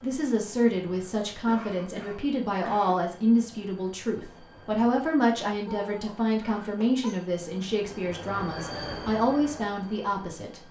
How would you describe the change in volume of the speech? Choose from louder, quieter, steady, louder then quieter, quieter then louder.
steady.